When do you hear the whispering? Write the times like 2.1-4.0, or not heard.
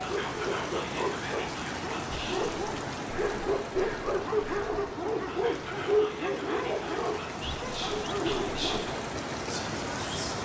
0.0-10.3.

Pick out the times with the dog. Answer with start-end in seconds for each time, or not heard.
0.0-8.9.